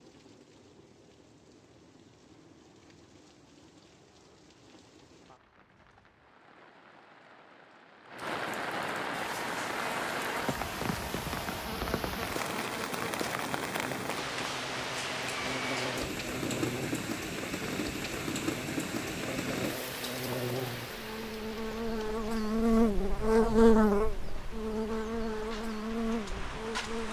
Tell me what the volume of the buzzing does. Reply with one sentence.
The loudness of the buzzing goes up.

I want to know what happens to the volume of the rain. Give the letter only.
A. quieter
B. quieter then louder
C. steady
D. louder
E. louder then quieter
E.